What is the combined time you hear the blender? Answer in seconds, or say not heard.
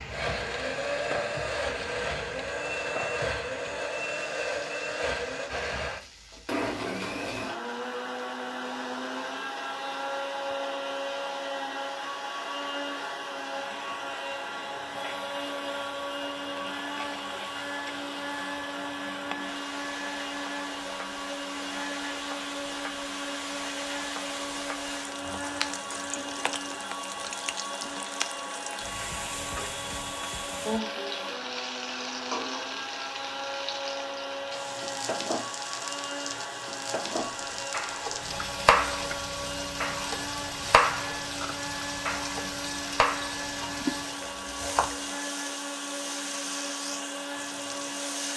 48 s.